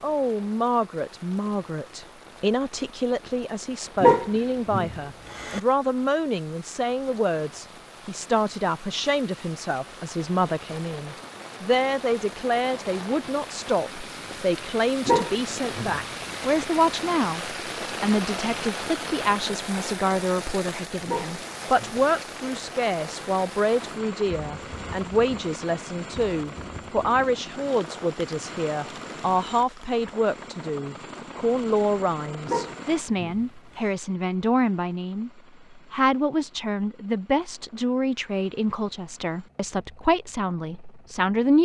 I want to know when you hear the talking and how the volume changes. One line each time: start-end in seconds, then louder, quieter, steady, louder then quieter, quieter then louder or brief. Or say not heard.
0.0-41.6 steady.